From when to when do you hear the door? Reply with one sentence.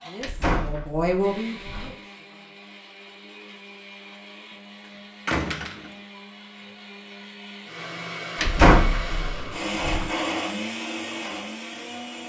You can hear the door from 0.2 to 1.9 s, from 5.2 to 5.9 s and from 8.3 to 10.1 s.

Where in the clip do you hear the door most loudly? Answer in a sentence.
The loudest moment of the door is at 9 seconds.